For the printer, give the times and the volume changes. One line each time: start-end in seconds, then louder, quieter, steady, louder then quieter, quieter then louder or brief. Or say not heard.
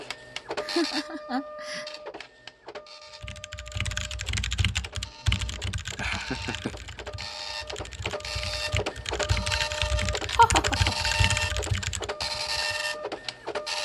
0.0-13.7 quieter then louder.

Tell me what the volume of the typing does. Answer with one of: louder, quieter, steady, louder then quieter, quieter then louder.
quieter then louder.